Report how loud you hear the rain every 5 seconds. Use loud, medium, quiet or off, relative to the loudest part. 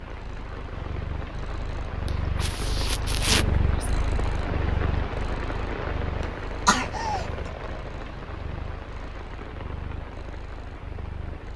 loud, loud, medium.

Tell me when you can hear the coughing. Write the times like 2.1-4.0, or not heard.
2.0-3.9, 6.2-7.3.